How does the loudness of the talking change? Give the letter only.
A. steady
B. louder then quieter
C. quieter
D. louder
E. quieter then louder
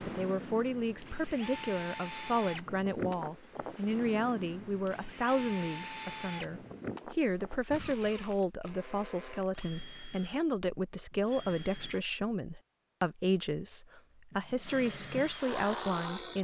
A.